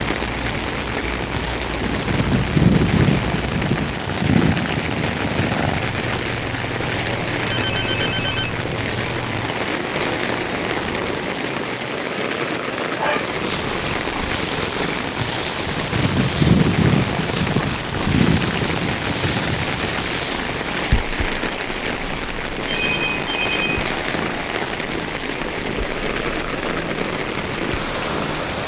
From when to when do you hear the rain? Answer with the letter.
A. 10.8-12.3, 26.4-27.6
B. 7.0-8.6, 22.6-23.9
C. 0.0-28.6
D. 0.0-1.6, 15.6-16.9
C.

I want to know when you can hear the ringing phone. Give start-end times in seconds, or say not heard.
7.0-8.6, 22.6-23.9.